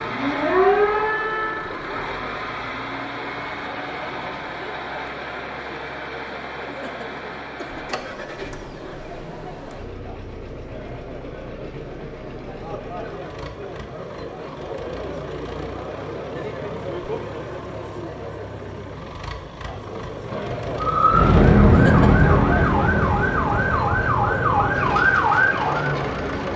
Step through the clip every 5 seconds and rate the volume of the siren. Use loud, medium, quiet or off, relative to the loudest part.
loud, off, off, off, loud, loud.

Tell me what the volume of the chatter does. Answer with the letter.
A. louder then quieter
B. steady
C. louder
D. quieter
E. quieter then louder
C.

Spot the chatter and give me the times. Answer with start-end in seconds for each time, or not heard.
0.0-26.5.